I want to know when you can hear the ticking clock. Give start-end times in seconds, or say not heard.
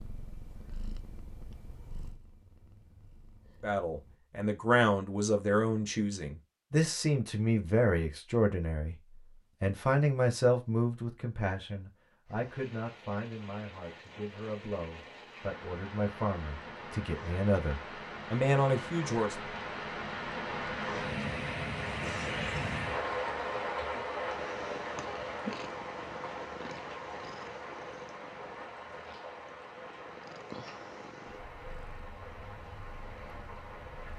not heard.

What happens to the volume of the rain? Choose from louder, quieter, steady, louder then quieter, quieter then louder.
louder then quieter.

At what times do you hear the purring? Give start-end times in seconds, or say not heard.
0.0-4.2, 24.3-34.1.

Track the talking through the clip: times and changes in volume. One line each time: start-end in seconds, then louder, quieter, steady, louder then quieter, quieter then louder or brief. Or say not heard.
3.6-19.4 quieter then louder.